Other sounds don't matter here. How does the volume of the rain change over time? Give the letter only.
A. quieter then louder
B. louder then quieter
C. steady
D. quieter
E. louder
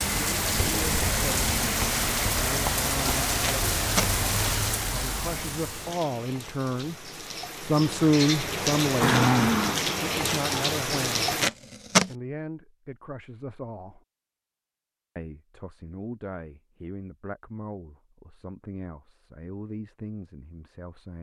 A.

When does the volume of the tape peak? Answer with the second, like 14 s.
12 s.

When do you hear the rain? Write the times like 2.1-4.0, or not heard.
0.0-11.5.